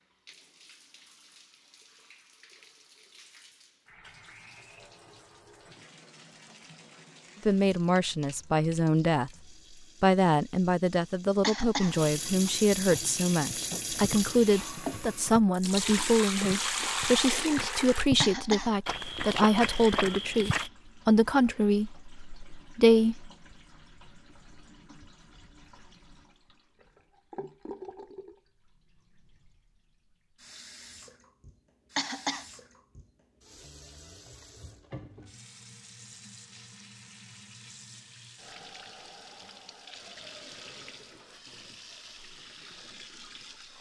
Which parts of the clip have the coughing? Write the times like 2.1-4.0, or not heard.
11.4-12.0, 18.2-18.8, 31.9-32.5.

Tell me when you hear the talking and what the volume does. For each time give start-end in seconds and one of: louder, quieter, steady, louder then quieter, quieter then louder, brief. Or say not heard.
7.5-9.3 brief
10.0-23.3 steady.